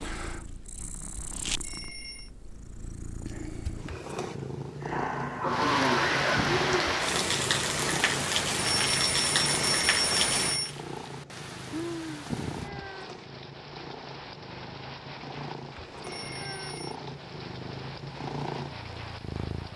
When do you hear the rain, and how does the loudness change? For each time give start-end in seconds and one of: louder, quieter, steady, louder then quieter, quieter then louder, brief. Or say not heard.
5.5-19.7 quieter.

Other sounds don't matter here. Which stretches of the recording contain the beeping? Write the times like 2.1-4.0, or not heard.
1.6-2.3, 8.6-10.8, 16.0-16.9.